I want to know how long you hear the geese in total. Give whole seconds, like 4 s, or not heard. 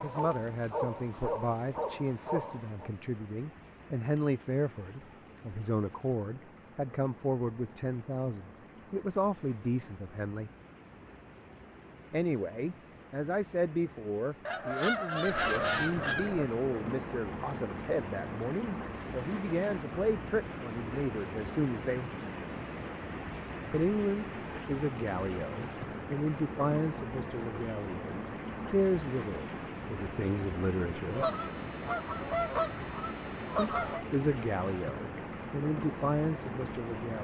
5 s.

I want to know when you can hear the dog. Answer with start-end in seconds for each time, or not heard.
0.0-2.9.